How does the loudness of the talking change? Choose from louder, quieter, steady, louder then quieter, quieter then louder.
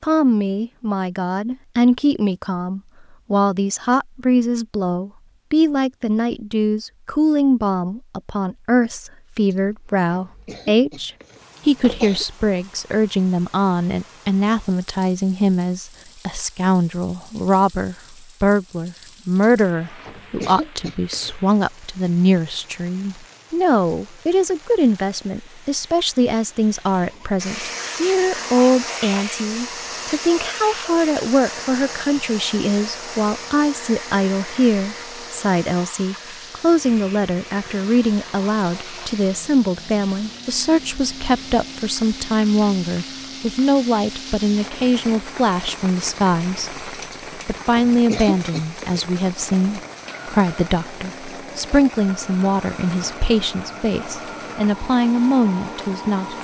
steady.